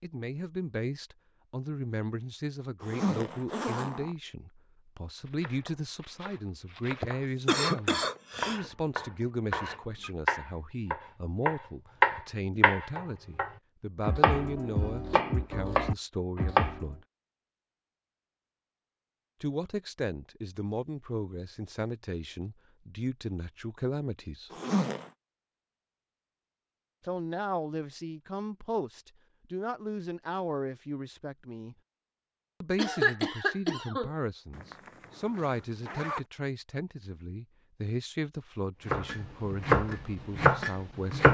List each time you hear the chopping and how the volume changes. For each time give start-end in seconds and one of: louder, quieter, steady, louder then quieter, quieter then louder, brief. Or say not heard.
5.2-16.9 louder then quieter
38.9-41.2 brief.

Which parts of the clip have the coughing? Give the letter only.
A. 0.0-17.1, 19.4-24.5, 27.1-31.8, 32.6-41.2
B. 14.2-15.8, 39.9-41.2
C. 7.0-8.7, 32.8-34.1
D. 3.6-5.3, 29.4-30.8
C.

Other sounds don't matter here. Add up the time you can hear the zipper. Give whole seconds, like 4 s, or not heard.
4 s.